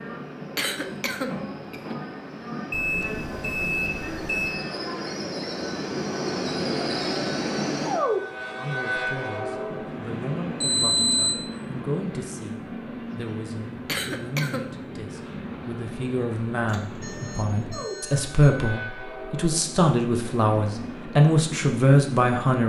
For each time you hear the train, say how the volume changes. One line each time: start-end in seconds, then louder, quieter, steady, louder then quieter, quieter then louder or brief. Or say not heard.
0.0-22.6 louder then quieter.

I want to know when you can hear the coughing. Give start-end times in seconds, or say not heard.
0.6-2.0, 13.8-14.8.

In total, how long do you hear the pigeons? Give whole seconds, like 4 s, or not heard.
not heard.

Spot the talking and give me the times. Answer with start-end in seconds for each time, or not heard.
8.6-22.6.